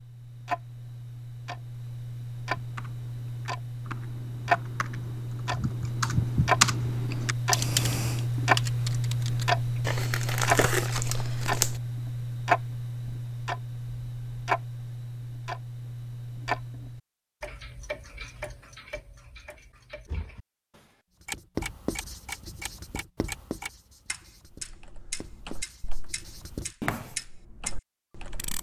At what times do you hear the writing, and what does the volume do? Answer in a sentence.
You can hear the writing from 21.2 to 27.1 s, getting quieter then louder.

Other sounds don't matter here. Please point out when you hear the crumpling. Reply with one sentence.
The crumpling can be heard from 9.8 to 11.8 s.